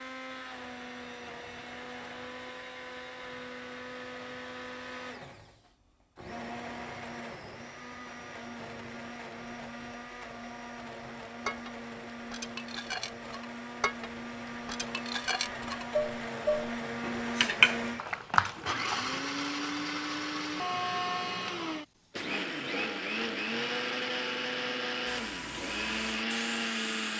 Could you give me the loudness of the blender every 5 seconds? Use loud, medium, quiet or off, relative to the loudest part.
medium, medium, medium, loud, loud, loud.